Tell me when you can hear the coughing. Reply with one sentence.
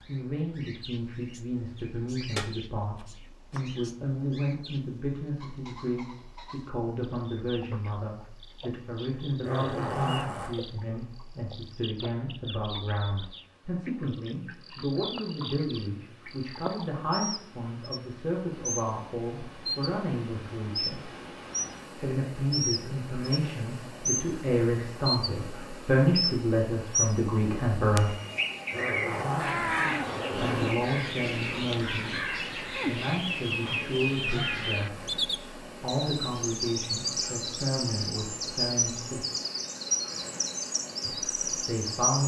You can't hear the coughing here.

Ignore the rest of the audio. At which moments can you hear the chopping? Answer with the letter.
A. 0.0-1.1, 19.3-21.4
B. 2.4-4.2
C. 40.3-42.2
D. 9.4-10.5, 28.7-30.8
B.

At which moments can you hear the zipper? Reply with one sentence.
You can hear the zipper from 9.4 to 10.5 s and from 28.7 to 30.8 s.